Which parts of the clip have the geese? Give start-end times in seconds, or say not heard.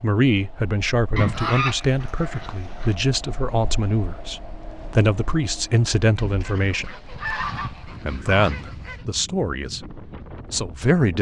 1.1-3.0, 6.2-9.1.